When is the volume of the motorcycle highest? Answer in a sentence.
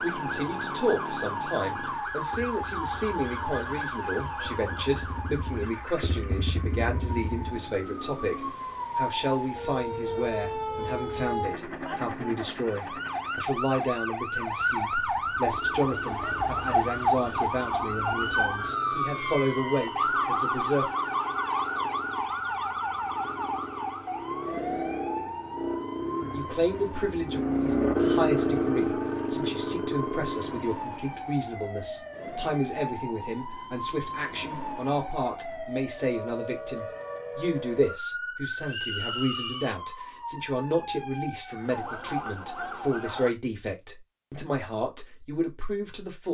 The loudest moment of the motorcycle is at 28 seconds.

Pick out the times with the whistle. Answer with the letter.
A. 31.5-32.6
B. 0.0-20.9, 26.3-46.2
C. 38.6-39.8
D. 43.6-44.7
C.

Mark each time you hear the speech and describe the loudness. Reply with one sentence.
You can hear the speech from 0.0 to 20.9 s, at a steady volume; and from 26.3 to 46.2 s, at a steady volume.